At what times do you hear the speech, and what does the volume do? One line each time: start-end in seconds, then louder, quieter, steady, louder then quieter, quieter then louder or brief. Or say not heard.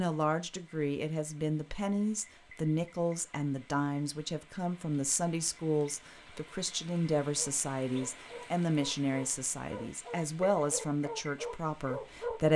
0.0-12.5 steady.